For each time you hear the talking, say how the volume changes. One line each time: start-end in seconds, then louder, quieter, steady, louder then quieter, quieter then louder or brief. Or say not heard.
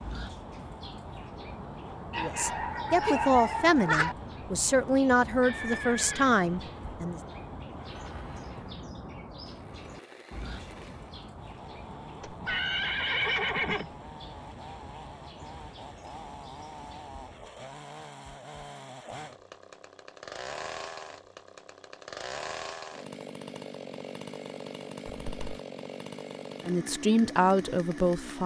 2.1-7.2 steady
26.6-28.4 brief.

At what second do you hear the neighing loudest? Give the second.
13 s.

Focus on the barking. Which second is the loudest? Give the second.
4 s.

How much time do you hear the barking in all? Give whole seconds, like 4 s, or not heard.
2 s.